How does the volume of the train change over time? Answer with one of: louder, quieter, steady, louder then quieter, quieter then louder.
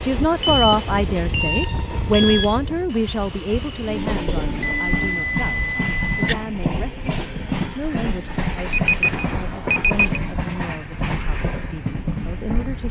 steady.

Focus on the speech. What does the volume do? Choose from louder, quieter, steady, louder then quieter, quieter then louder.
quieter.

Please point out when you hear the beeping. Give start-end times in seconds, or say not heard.
0.3-2.5, 4.6-6.4, 8.7-10.1.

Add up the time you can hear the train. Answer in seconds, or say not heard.
13 s.